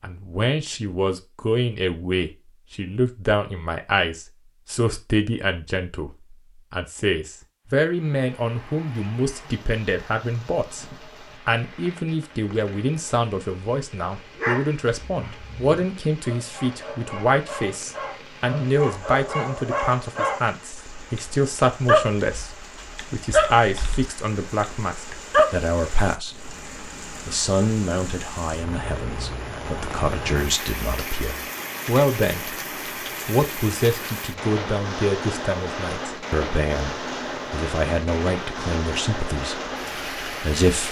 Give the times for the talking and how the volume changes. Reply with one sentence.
The talking can be heard from 0.0 to 26.5 s, at a steady volume; from 27.2 to 32.5 s, getting quieter then louder; and from 33.2 to 40.8 s, getting quieter.